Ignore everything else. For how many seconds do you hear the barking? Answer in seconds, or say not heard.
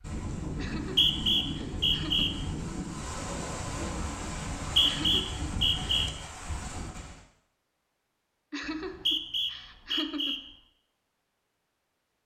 not heard.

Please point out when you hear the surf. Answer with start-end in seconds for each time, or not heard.
0.0-7.2.